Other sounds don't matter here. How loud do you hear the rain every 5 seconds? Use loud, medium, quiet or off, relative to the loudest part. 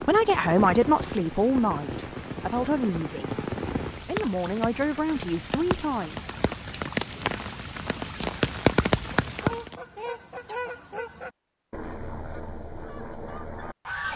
medium, loud, off.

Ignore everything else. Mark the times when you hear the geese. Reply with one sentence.
You can hear the geese from 9.3 to 14.1 s.